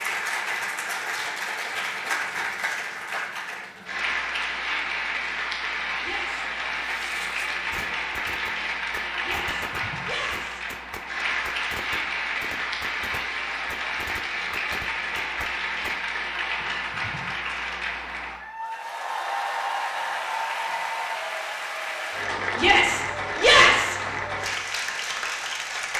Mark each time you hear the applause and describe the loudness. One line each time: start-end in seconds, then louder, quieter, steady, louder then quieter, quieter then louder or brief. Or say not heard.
0.0-25.9 steady.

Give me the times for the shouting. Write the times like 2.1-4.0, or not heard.
6.0-6.5, 9.2-10.6, 22.6-23.9.